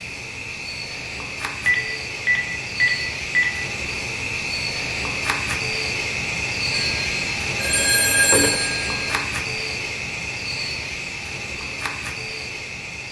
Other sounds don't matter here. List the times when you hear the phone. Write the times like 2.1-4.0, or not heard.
1.6-3.5, 6.8-9.2.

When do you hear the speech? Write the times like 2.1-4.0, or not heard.
not heard.